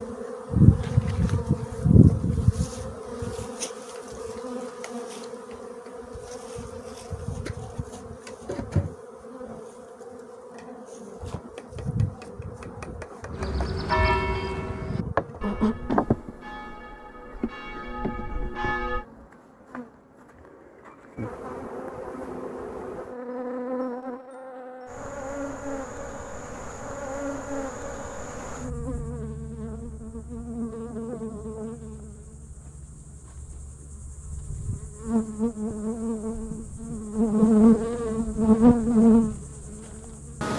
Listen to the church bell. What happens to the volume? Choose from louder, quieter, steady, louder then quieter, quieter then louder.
quieter then louder.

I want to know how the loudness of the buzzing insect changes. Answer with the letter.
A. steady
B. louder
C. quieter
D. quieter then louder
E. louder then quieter
D.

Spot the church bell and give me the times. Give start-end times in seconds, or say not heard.
13.3-19.1.